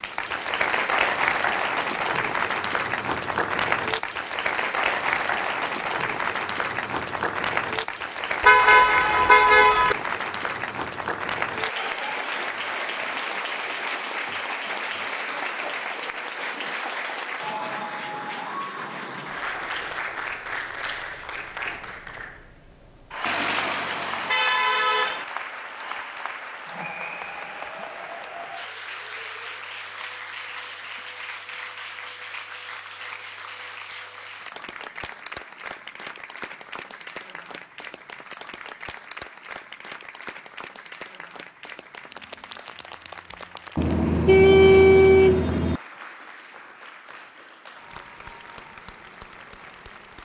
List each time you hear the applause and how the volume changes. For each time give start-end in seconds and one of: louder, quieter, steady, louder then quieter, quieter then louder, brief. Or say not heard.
0.0-50.2 quieter.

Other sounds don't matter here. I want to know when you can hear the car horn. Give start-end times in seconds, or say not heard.
8.4-9.9, 23.2-25.2, 43.8-45.8.